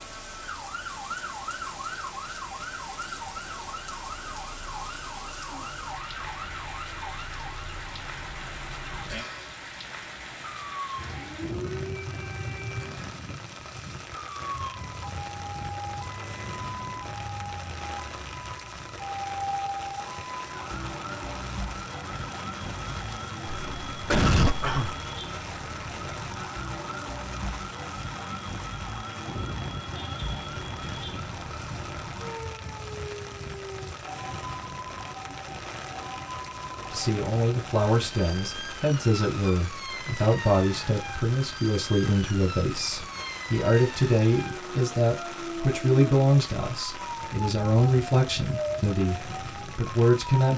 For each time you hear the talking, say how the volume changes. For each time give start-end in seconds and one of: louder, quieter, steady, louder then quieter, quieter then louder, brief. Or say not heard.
36.9-50.5 steady.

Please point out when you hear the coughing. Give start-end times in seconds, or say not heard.
23.4-24.9.